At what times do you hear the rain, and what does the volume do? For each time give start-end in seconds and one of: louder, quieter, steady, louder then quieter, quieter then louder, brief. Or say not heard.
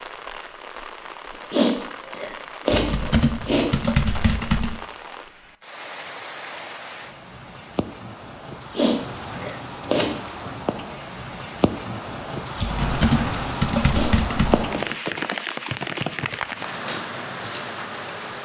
0.0-18.4 louder.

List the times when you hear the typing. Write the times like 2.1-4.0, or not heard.
2.7-4.8, 12.6-14.7.